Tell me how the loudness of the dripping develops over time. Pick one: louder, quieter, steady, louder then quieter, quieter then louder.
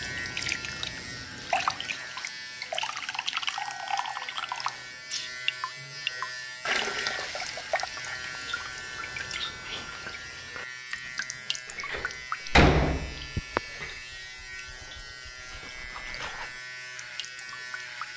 quieter.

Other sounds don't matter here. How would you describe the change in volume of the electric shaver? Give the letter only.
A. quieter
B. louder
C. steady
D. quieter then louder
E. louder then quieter
C.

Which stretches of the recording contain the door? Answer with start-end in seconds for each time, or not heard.
11.8-13.9.